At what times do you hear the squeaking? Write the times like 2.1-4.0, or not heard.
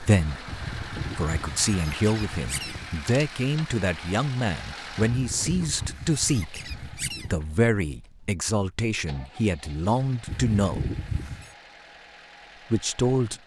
0.5-3.0, 5.1-7.5, 10.2-11.6.